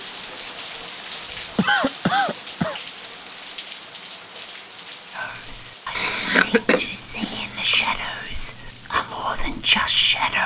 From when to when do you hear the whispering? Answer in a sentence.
You can hear the whispering from 5.1 to 10.4 s.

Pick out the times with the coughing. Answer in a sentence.
You can hear the coughing from 1.6 to 2.8 s and from 6.0 to 7.9 s.